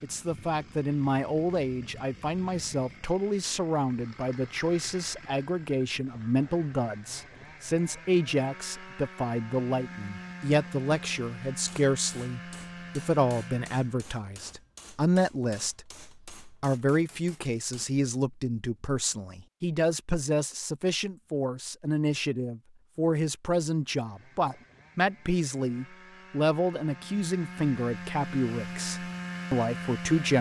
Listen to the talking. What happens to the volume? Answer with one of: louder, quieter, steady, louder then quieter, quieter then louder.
steady.